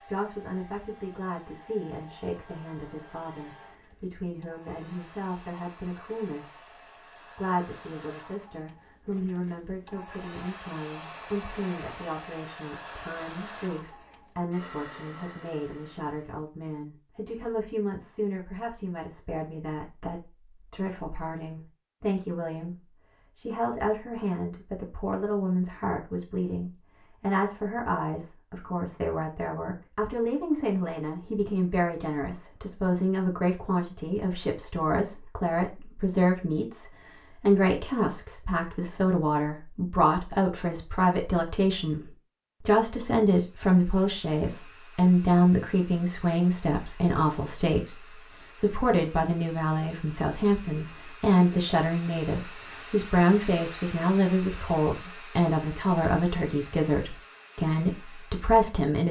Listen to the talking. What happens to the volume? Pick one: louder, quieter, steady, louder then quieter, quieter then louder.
louder.